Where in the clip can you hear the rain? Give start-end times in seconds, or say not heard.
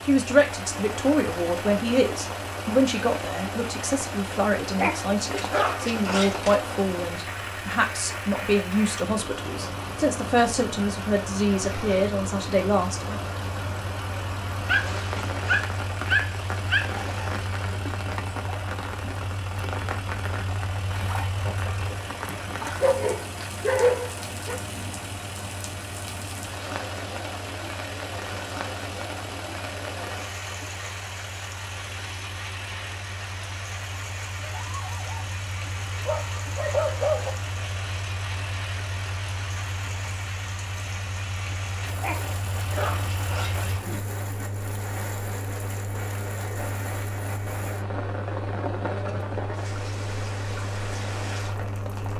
0.0-52.1.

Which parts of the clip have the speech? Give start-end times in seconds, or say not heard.
0.0-13.2.